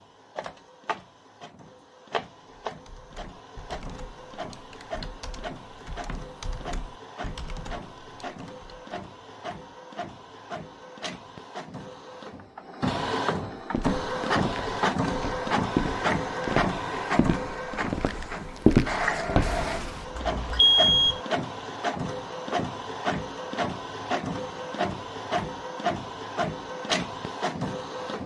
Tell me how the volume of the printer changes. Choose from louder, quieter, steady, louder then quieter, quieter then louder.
louder.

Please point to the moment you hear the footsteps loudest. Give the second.
19 s.